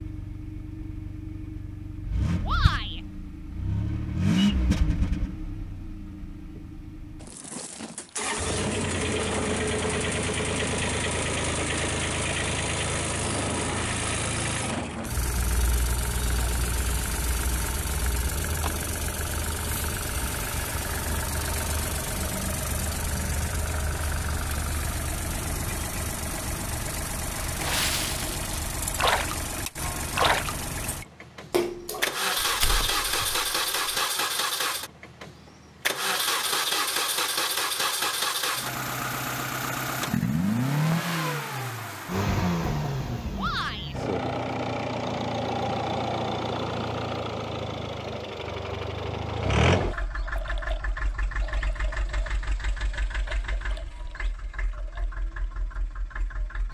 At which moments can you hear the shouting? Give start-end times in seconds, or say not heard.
2.5-3.0, 43.4-44.0.